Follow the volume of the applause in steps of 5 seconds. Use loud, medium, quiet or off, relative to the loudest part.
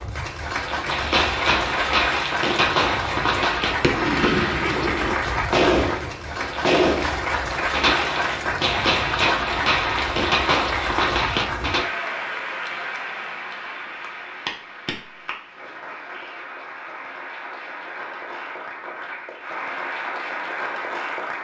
loud, loud, loud, medium, loud.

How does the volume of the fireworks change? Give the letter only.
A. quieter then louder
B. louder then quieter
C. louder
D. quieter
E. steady
E.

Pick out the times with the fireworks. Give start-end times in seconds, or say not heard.
0.8-11.8.